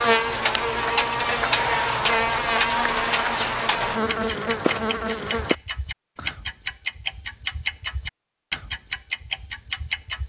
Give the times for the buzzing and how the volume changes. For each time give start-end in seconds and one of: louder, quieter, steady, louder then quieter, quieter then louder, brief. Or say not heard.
0.0-5.5 steady.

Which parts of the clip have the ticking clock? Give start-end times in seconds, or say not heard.
0.0-10.2.